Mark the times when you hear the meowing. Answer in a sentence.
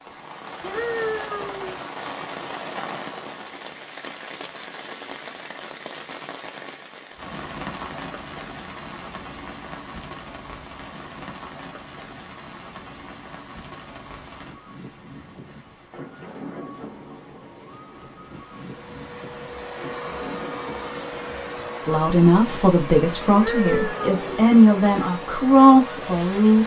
The meowing can be heard from 0.6 to 1.8 s and from 23.3 to 24.4 s.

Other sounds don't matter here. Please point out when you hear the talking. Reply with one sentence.
You can hear the talking from 21.9 to 26.6 s.